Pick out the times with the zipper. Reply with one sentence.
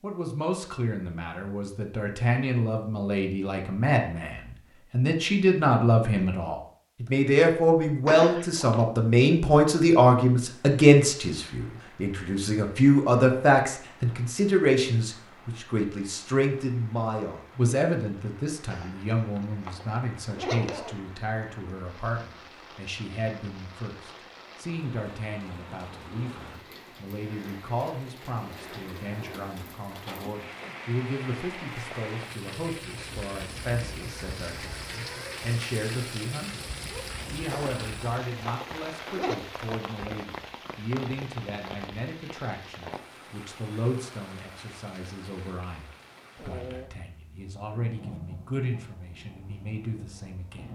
The zipper can be heard from 8.1 to 8.8 s, from 18.7 to 20.9 s and from 37.5 to 39.4 s.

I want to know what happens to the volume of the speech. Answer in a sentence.
The volume of the speech goes down.